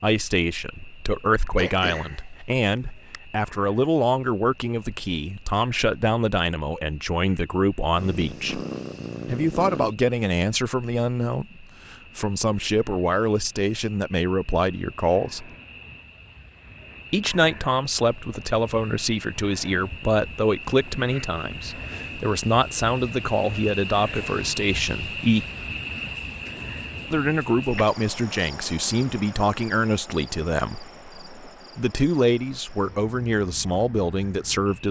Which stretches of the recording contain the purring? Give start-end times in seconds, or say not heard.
7.9-9.9.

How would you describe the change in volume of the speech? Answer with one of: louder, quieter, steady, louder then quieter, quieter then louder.
steady.